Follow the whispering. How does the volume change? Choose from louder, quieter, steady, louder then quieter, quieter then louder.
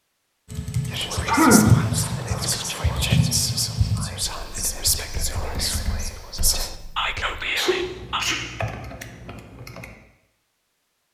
steady.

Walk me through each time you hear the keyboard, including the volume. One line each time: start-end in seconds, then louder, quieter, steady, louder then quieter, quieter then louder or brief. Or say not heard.
0.5-9.9 quieter then louder.